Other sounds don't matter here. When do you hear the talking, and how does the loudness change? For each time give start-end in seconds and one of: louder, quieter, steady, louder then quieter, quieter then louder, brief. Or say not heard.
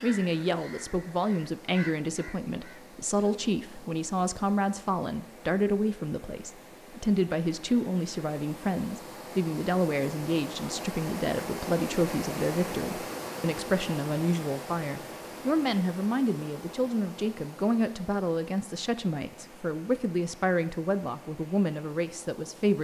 0.0-22.7 steady.